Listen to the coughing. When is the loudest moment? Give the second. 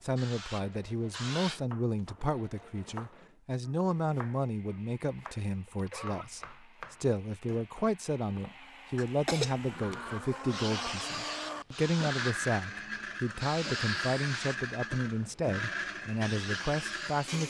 9 s.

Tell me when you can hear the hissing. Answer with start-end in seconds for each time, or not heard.
0.0-1.6, 10.4-17.4.